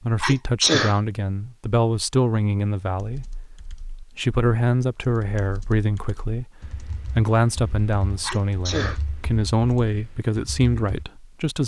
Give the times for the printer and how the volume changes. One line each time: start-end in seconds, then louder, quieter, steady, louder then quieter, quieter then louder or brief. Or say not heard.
not heard.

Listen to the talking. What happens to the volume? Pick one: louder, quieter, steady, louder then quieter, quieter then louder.
steady.